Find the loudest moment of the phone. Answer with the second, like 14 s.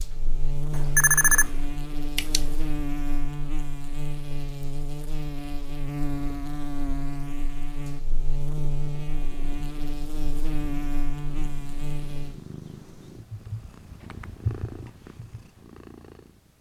1 s.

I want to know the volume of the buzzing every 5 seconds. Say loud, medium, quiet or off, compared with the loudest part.
loud, loud, loud, off.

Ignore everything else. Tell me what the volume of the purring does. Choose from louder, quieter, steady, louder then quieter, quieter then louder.
louder then quieter.